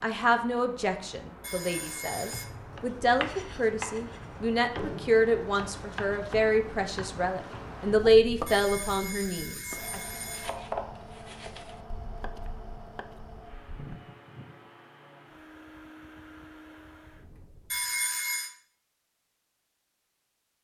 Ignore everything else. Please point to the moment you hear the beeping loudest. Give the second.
18 s.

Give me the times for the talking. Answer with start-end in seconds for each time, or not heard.
0.0-10.0.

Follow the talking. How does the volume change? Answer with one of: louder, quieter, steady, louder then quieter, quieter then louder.
louder.